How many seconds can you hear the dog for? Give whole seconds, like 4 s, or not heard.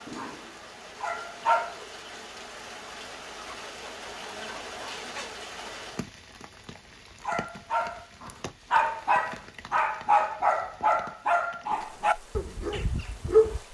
8 s.